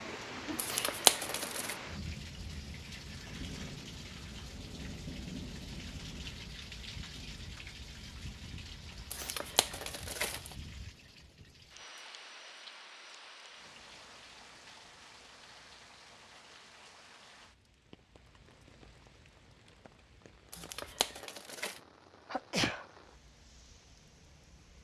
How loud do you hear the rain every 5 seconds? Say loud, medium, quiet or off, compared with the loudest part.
loud, loud, medium, quiet, quiet.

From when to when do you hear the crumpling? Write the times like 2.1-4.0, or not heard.
0.6-1.8, 9.1-10.6, 20.5-21.8.